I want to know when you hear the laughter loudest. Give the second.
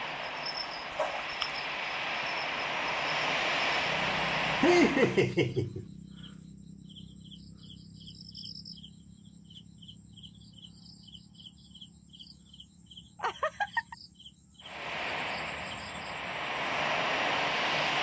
5 s.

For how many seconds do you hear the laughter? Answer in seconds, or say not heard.
2 s.